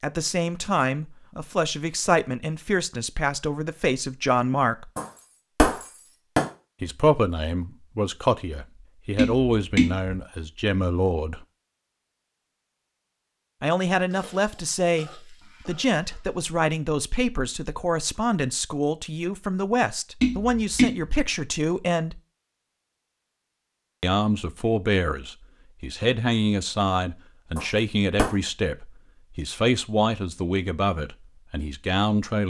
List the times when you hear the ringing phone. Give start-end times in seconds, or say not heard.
not heard.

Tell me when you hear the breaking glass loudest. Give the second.
6 s.